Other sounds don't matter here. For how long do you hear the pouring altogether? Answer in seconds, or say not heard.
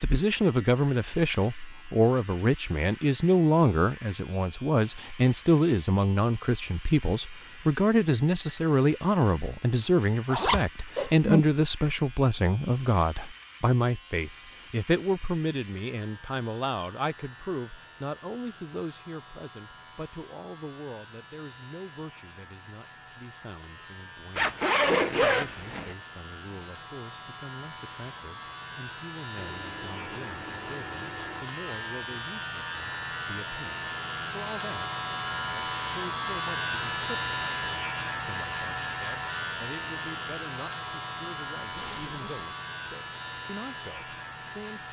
2 s.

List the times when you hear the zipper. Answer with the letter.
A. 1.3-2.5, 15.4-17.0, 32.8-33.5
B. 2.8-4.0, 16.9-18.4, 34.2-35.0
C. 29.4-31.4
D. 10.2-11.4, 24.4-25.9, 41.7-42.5
D.